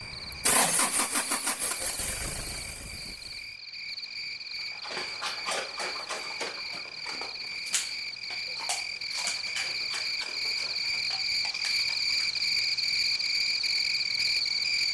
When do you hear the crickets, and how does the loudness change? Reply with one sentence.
The crickets can be heard from 0.0 to 14.8 s, getting louder.